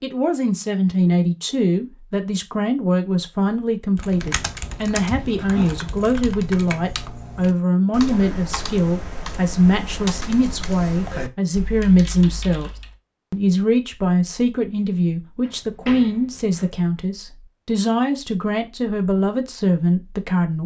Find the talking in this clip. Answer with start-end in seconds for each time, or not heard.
0.0-12.7, 13.3-20.6.